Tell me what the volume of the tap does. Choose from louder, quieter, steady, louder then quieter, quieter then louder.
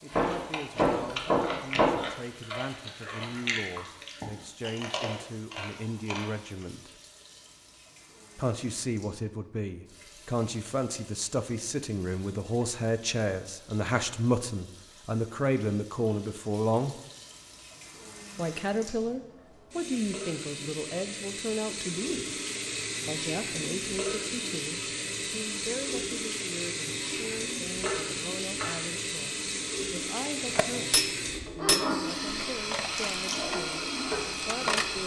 louder.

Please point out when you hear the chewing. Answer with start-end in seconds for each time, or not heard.
0.0-6.7.